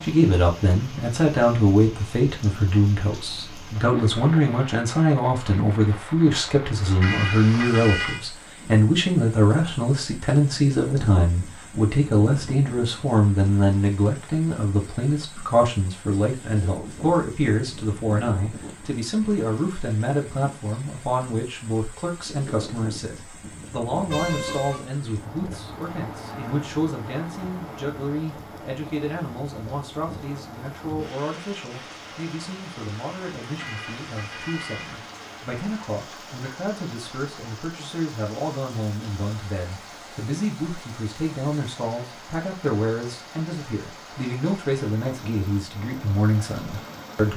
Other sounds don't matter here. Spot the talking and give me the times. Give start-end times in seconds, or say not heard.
0.0-47.3.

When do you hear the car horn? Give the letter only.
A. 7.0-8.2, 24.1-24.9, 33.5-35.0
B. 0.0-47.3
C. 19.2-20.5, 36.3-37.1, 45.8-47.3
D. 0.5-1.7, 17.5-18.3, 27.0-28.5
A.